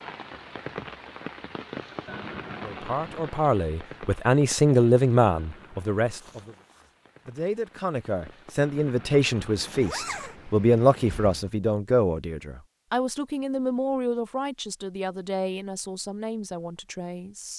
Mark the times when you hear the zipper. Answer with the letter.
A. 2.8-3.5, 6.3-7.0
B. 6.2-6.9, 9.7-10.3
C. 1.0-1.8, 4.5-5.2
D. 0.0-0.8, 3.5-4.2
B.